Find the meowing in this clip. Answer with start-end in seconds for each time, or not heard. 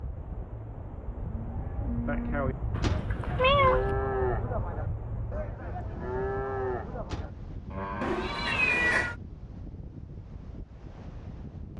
2.8-3.9, 8.0-9.2.